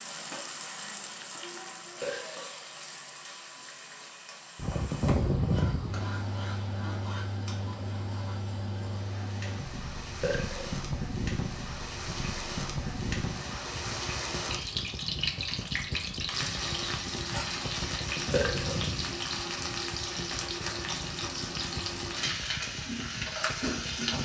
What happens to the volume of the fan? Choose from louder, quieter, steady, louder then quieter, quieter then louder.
quieter.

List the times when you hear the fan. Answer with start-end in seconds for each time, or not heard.
4.5-24.1.